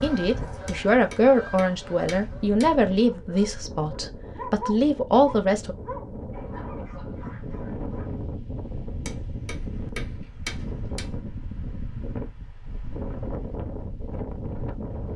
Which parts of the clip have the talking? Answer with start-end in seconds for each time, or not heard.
0.0-5.8.